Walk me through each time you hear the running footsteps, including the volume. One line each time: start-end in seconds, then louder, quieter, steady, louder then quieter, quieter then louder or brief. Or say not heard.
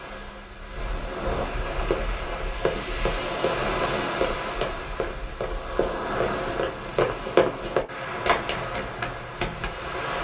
1.7-9.7 louder then quieter.